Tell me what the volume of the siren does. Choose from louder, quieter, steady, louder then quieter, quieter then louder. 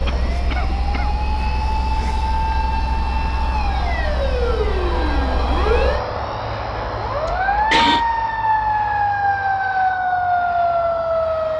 louder.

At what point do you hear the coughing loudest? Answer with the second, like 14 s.
8 s.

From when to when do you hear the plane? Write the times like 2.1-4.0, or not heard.
0.0-11.5.